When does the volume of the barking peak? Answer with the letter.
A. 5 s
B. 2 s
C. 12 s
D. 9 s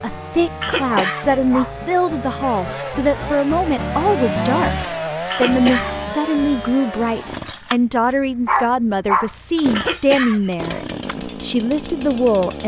D.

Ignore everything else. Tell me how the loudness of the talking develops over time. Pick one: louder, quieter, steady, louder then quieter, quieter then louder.
steady.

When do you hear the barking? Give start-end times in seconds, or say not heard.
0.9-1.8, 8.4-9.3.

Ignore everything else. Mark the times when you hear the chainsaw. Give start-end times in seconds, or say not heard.
0.0-12.6.